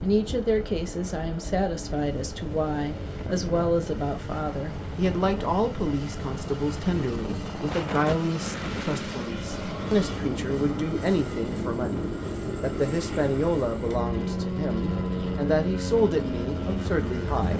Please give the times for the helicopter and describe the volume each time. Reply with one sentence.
The helicopter can be heard from 0.0 to 17.5 s, getting louder.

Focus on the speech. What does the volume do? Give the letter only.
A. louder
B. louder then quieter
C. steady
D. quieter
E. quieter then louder
C.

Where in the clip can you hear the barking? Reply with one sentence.
The barking can't be heard in this clip.